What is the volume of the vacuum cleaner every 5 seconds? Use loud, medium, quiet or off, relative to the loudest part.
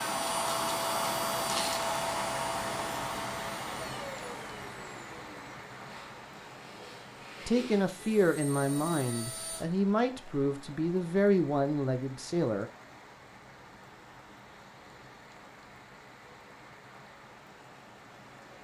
loud, quiet, off, off.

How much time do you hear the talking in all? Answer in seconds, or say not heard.
5 s.